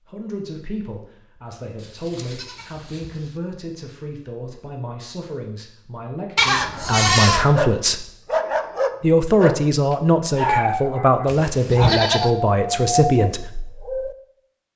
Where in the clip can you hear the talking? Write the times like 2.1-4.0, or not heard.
0.1-8.1, 9.0-13.5.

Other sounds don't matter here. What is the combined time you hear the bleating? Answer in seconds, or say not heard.
4 s.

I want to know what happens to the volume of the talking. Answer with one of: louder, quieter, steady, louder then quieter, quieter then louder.
louder.